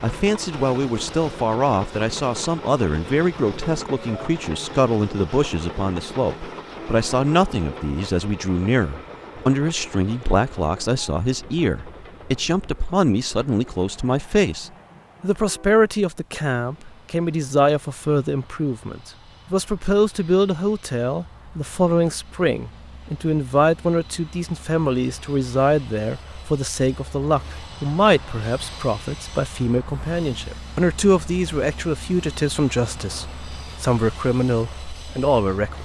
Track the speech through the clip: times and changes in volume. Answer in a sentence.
The speech can be heard from 0.0 to 35.8 s, at a steady volume.